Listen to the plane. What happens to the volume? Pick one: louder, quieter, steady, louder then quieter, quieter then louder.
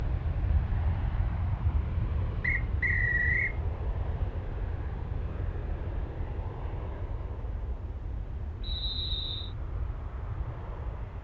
quieter.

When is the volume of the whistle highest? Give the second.
3 s.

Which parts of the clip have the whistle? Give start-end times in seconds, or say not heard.
2.4-3.5, 8.6-9.5.